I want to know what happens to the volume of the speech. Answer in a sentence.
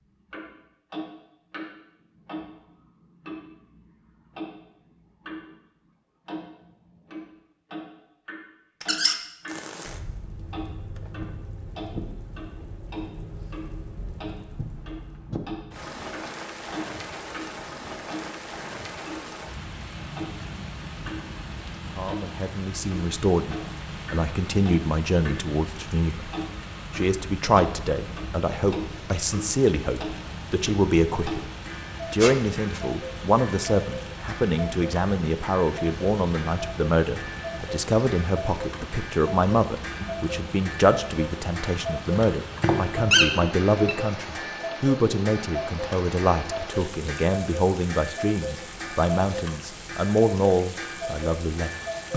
The loudness of the speech stays about the same.